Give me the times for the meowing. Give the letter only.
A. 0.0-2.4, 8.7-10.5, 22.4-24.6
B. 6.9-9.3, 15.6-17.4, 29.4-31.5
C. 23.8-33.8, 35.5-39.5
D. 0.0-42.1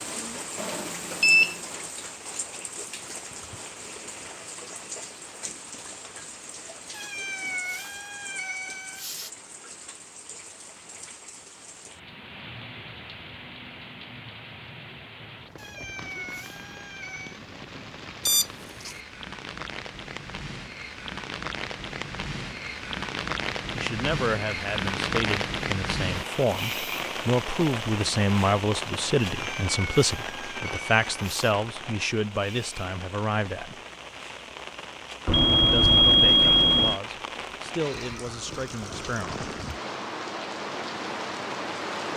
B.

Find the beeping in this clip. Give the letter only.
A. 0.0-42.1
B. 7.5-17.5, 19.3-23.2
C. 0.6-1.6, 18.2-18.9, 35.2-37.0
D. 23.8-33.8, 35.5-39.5
C.